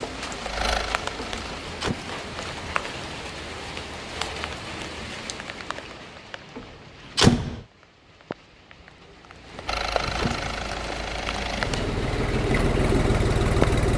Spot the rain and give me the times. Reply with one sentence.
You can hear the rain from 0.0 to 13.8 s.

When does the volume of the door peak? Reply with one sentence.
The volume of the door peaks at 7 seconds.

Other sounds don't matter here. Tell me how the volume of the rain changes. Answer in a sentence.
The loudness of the rain goes down, then up.